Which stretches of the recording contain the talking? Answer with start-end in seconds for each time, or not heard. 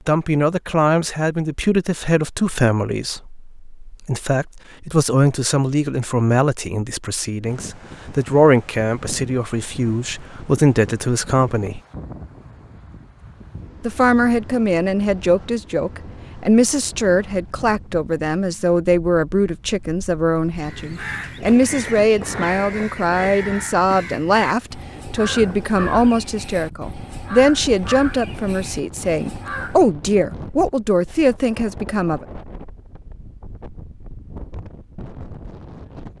0.1-11.8, 13.8-32.2.